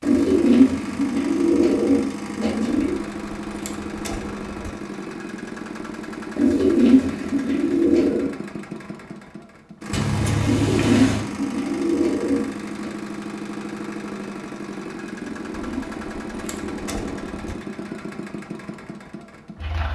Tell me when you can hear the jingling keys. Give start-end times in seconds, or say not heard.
3.0-4.7, 9.9-11.2, 15.5-17.6.